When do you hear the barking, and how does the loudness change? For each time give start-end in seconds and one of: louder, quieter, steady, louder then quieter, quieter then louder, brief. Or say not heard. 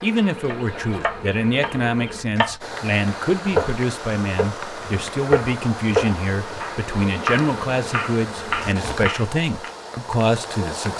not heard.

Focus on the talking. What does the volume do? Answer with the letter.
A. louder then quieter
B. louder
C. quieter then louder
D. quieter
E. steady
E.